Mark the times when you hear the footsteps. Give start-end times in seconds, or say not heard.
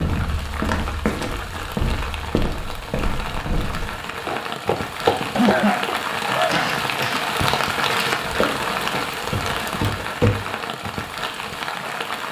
0.0-10.5.